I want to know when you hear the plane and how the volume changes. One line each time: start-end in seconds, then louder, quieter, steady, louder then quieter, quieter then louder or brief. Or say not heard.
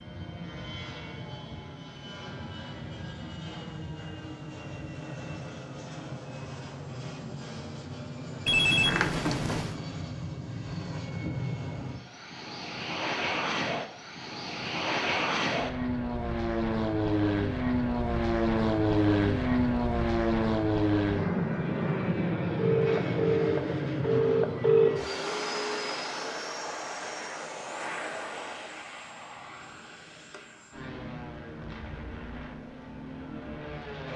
0.0-34.1 louder then quieter.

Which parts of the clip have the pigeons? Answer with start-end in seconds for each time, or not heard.
not heard.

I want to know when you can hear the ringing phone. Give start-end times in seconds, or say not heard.
8.4-9.8, 22.6-25.1.